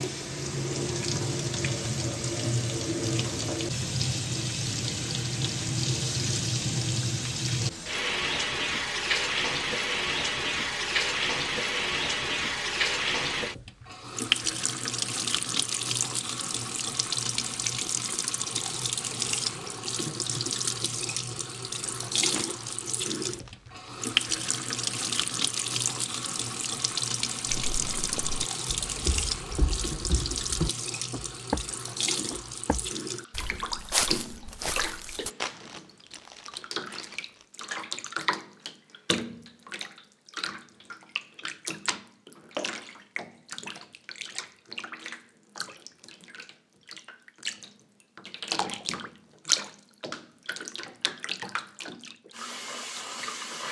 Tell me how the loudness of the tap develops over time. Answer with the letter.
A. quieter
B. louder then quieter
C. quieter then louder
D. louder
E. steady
A.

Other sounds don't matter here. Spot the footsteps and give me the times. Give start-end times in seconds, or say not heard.
27.4-35.3.